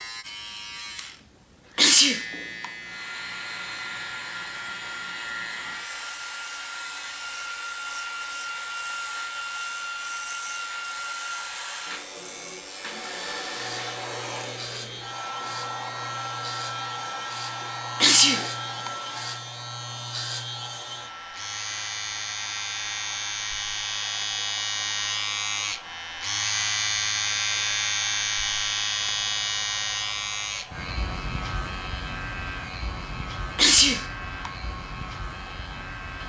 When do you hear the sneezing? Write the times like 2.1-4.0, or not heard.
1.8-2.6, 18.0-18.9, 33.5-34.5.